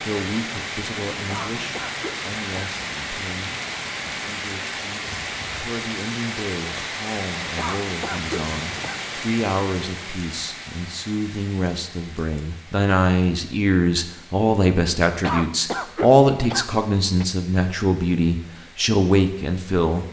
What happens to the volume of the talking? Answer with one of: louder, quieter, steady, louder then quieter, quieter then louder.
louder.